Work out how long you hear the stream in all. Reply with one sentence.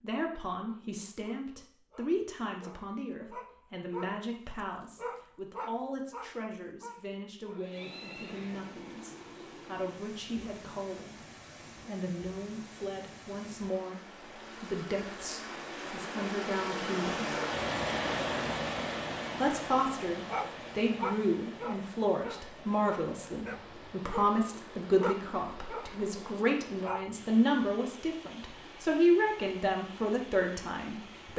The stream can be heard for 24 seconds in total.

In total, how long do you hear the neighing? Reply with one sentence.
The neighing can be heard for 2 seconds in total.